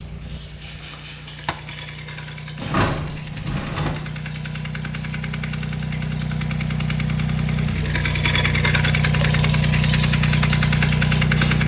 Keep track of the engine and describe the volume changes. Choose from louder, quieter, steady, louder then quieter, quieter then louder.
louder.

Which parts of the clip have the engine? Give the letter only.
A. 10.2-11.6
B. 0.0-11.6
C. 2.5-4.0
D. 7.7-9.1
B.